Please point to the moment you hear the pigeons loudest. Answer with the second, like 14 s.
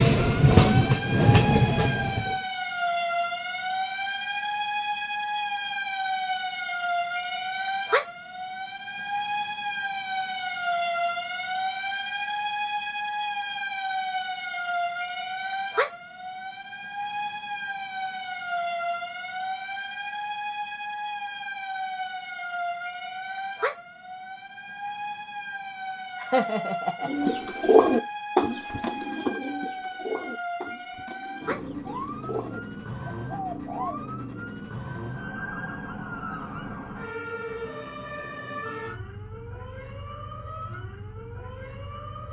28 s.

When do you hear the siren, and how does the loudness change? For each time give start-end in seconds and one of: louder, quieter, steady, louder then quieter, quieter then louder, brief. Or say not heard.
0.1-42.2 quieter.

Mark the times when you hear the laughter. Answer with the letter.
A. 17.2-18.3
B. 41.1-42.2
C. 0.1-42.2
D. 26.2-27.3
D.